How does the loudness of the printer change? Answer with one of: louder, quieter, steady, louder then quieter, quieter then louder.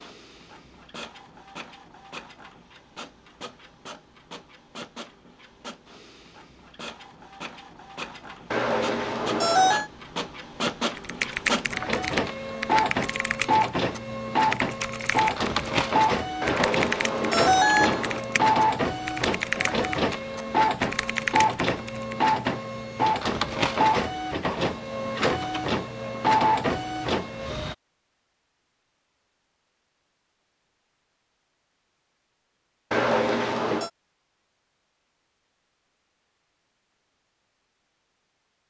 louder.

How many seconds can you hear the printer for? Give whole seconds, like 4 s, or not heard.
28 s.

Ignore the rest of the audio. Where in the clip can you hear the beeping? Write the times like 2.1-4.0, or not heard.
8.5-9.9, 16.4-18.2, 32.9-33.9.